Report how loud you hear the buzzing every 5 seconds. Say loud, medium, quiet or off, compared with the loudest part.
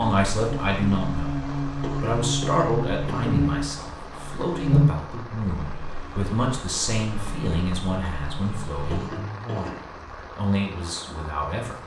loud, quiet, off.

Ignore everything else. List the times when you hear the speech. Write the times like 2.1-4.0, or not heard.
0.0-11.8.